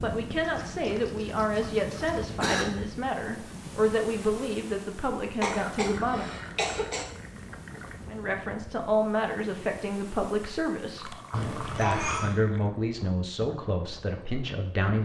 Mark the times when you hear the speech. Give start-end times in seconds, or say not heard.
0.0-6.5, 8.1-15.0.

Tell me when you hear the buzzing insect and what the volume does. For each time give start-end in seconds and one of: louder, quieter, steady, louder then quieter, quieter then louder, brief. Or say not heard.
not heard.